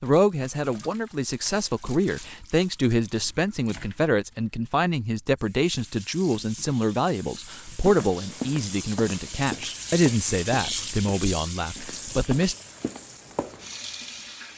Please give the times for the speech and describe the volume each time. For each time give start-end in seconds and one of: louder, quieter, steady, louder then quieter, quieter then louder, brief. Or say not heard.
0.0-12.6 steady.